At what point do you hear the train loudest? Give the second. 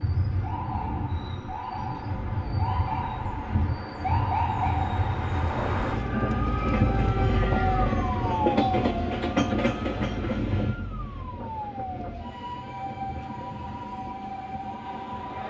9 s.